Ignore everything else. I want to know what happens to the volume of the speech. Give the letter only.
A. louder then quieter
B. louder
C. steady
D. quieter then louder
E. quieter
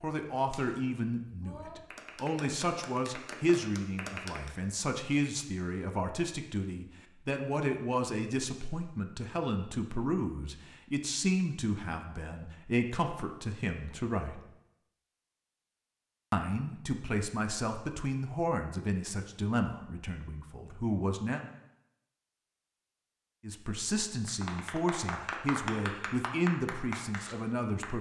C.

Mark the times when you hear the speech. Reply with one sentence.
You can hear the speech from 0.0 to 14.4 s, from 16.3 to 21.4 s and from 23.4 to 27.9 s.